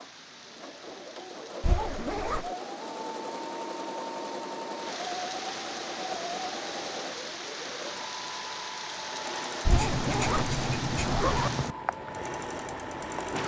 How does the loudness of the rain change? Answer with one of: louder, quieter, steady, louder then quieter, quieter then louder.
louder.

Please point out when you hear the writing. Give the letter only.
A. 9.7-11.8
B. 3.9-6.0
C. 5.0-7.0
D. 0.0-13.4
A.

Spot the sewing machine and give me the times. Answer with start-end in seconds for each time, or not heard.
0.0-13.4.